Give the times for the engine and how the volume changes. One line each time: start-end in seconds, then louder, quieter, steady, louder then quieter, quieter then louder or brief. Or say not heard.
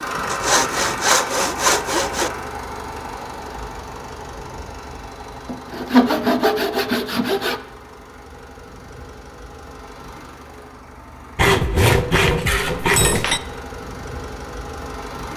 0.0-15.3 quieter then louder.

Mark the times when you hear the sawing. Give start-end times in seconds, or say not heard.
0.2-2.3, 5.5-7.6, 11.3-13.4.